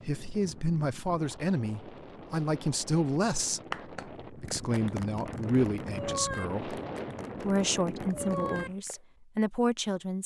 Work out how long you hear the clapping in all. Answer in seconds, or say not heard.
5 s.